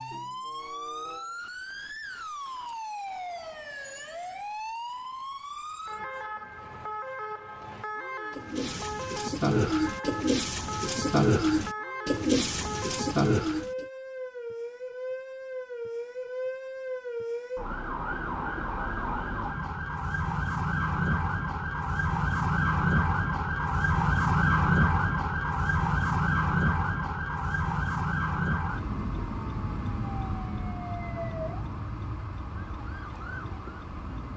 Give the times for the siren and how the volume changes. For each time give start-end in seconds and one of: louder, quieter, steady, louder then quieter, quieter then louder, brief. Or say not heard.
0.0-34.3 louder then quieter.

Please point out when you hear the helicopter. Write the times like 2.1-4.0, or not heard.
not heard.